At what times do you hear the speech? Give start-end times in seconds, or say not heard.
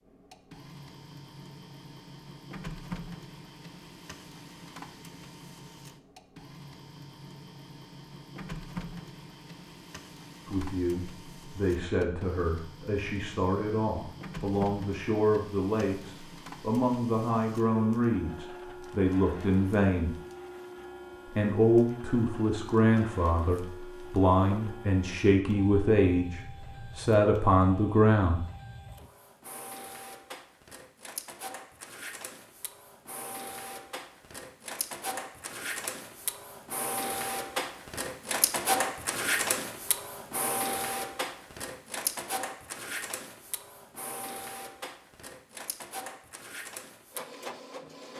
10.4-20.1, 21.2-28.4.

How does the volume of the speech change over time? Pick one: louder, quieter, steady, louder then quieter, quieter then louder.
louder.